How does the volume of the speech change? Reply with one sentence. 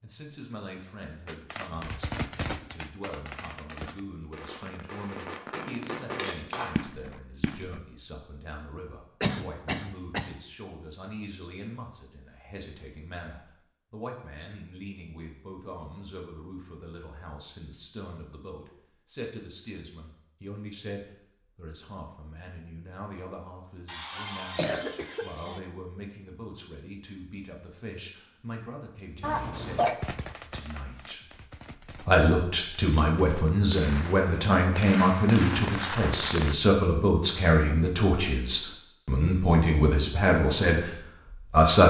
The volume of the speech goes up.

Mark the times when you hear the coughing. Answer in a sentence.
The coughing can be heard from 9.2 to 10.3 s, from 23.9 to 25.6 s and from 29.2 to 30.0 s.